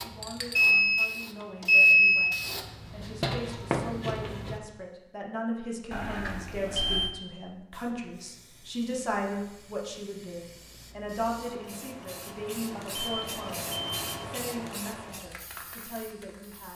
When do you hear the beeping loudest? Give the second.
2 s.